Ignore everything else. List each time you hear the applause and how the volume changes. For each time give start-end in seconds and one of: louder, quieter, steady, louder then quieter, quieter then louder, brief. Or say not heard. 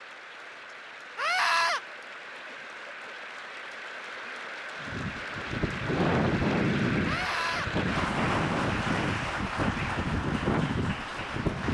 0.0-11.6 louder.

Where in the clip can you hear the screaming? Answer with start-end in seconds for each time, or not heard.
1.1-1.8, 7.0-7.7.